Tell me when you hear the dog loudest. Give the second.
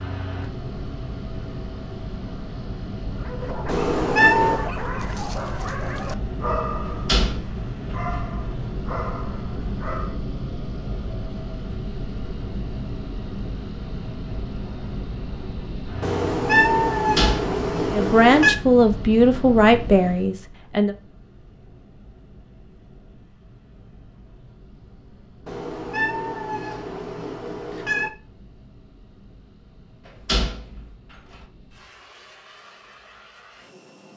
7 s.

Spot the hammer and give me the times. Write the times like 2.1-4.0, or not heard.
not heard.